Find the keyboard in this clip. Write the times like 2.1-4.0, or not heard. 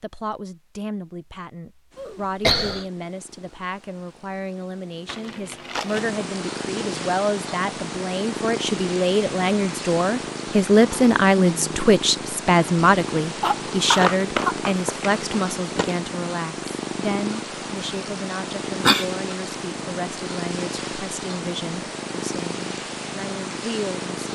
not heard.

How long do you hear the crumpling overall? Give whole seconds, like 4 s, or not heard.
3 s.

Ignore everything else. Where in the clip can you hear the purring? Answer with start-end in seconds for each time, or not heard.
1.9-24.2.